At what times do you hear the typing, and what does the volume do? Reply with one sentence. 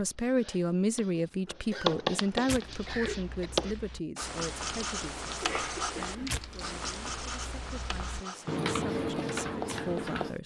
You can hear the typing from 2.6 to 10.3 s, getting louder.